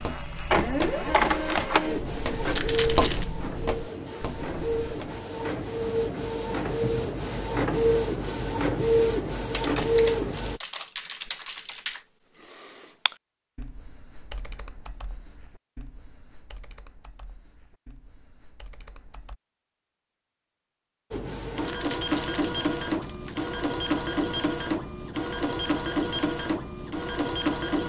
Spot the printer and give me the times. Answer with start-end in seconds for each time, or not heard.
0.0-10.6, 21.1-27.8.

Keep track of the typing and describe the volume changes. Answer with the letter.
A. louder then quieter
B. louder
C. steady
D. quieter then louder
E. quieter
E.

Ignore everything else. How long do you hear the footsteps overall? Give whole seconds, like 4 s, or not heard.
5 s.